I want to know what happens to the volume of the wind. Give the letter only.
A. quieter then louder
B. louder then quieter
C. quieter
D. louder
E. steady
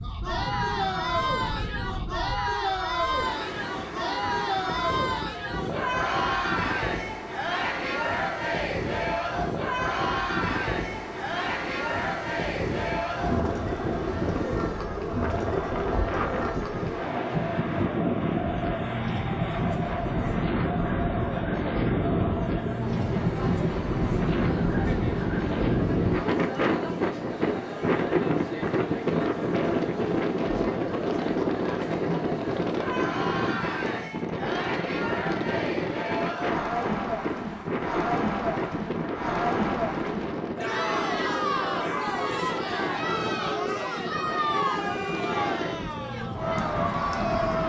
B.